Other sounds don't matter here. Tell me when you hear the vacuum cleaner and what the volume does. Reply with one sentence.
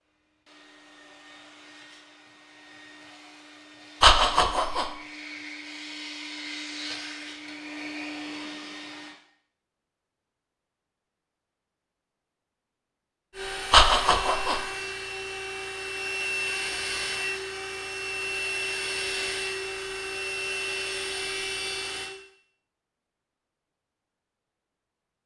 The vacuum cleaner can be heard from 0.0 to 9.2 s, getting louder; and from 13.3 to 22.1 s, at a steady volume.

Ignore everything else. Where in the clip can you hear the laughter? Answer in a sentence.
The laughter can be heard from 4.0 to 4.8 s and from 13.7 to 14.6 s.